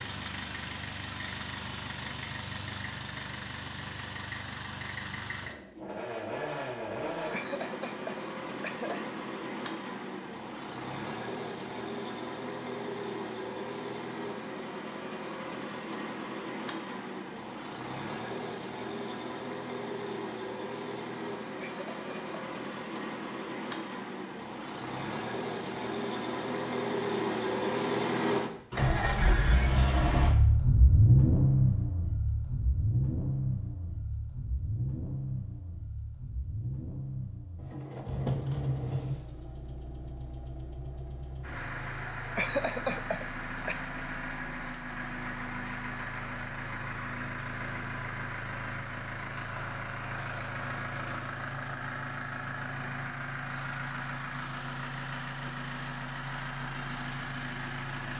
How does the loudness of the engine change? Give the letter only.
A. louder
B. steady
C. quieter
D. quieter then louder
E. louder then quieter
E.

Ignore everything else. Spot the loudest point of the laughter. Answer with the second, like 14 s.
43 s.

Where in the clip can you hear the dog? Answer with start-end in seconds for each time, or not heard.
not heard.